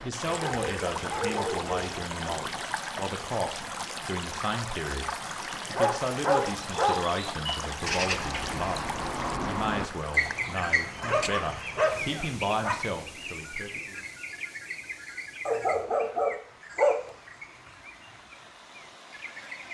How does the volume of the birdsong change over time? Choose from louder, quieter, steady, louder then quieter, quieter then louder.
quieter.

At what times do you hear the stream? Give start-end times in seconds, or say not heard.
0.0-19.6.